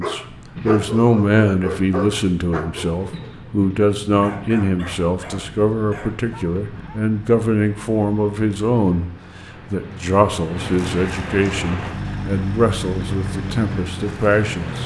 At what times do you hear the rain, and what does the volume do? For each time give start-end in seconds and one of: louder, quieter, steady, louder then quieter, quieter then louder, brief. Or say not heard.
not heard.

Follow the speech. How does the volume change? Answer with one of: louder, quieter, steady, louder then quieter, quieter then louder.
steady.